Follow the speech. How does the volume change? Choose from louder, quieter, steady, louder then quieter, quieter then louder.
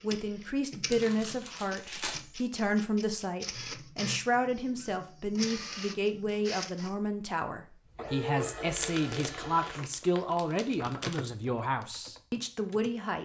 steady.